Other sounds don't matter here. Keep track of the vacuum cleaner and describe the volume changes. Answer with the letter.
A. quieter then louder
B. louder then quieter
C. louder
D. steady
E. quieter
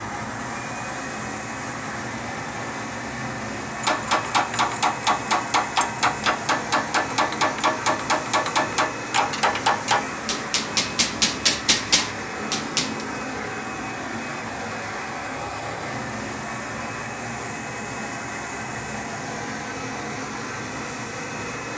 D.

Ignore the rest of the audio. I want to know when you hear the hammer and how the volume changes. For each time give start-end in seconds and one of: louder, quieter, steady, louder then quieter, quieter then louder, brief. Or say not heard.
3.8-13.1 steady.